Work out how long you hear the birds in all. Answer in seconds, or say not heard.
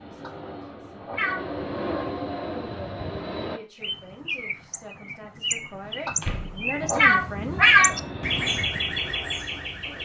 6 s.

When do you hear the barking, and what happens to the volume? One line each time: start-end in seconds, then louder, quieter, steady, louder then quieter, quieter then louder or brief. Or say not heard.
not heard.